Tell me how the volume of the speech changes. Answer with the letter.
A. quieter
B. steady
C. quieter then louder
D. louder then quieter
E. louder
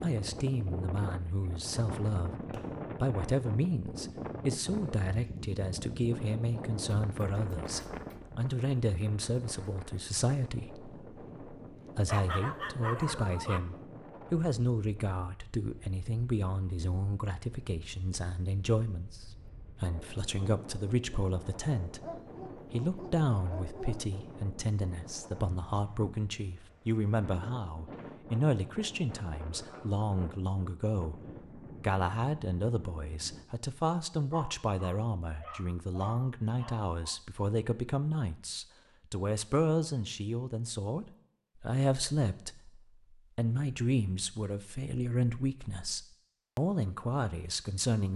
B.